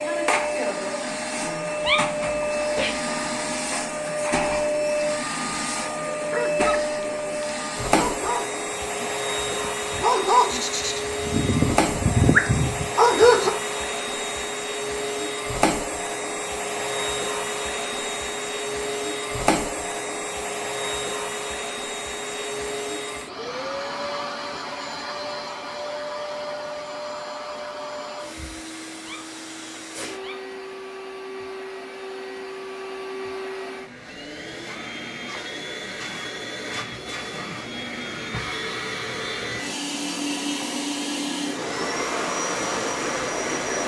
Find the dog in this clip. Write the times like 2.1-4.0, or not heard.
6.3-13.5.